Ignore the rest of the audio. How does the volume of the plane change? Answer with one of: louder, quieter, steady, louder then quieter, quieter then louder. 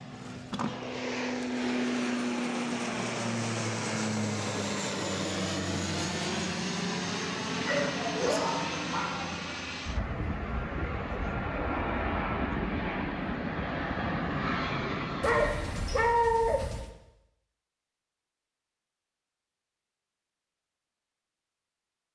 steady.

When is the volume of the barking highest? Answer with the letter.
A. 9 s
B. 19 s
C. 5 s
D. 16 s
D.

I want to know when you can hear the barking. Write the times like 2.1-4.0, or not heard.
7.7-9.2, 15.2-16.9.